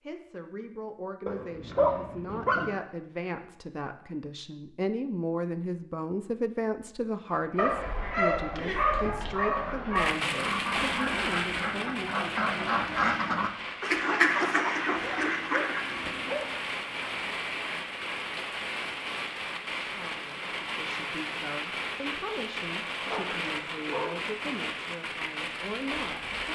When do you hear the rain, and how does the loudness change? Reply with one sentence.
You can hear the rain from 9.9 to 26.5 s, at a steady volume.